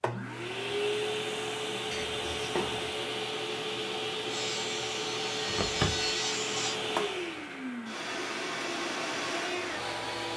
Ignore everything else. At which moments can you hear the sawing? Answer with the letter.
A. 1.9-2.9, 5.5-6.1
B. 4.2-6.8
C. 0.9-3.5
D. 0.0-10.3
B.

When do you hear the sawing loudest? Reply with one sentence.
The volume of the sawing peaks at 6 seconds.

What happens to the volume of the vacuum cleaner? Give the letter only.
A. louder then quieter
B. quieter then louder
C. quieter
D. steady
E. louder
D.